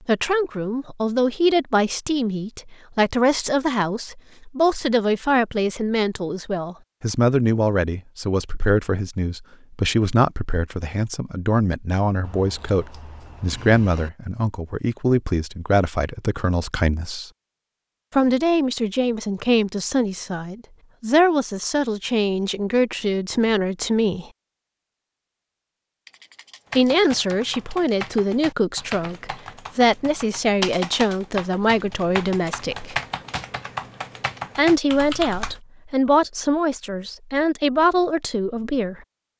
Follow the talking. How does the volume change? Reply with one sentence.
The volume of the talking stays about the same.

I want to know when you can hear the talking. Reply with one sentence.
The talking can be heard from 0.1 to 17.3 s, from 18.1 to 24.2 s, from 26.8 to 33.0 s and from 34.5 to 39.0 s.